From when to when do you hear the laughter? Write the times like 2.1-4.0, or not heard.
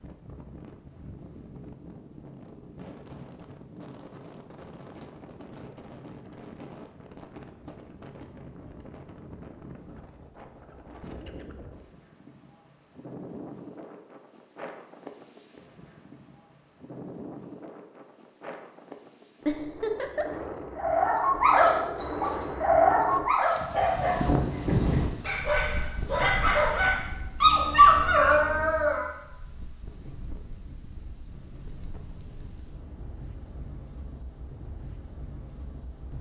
19.4-20.4.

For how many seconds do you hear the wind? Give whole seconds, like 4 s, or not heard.
36 s.